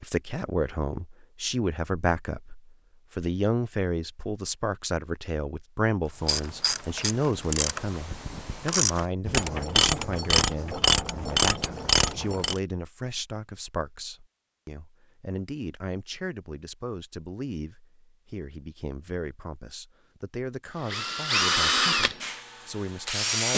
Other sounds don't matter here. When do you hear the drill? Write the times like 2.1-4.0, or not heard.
20.8-23.5.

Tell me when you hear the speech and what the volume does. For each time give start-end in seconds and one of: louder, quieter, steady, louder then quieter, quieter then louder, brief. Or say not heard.
0.0-23.5 quieter.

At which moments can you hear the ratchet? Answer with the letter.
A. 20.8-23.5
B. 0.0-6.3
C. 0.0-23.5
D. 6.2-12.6
D.